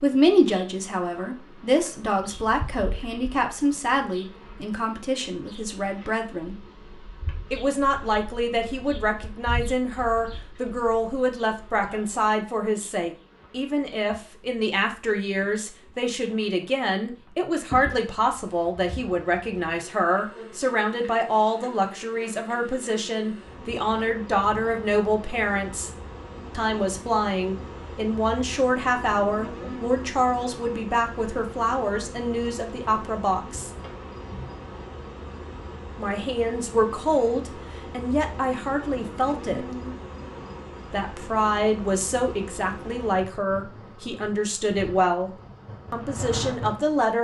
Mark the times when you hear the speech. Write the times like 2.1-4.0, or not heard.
0.0-6.5, 7.5-25.9, 26.6-33.7, 36.0-39.6, 40.9-45.3, 45.9-47.1.